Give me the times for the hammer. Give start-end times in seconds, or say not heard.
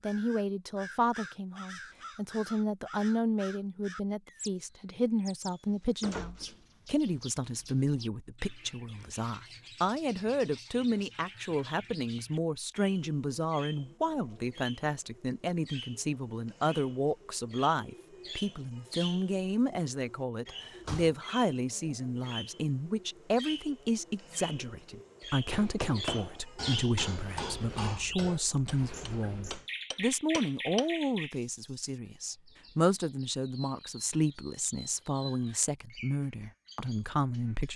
25.5-30.9.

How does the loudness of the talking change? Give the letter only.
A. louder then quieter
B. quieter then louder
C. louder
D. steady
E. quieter
D.